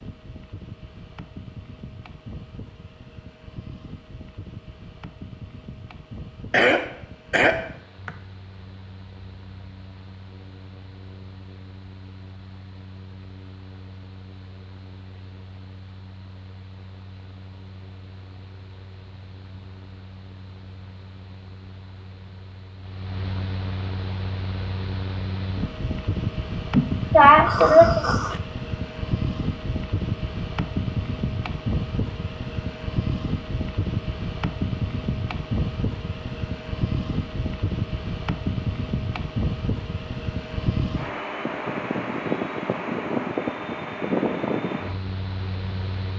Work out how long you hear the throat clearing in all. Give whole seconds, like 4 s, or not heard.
3 s.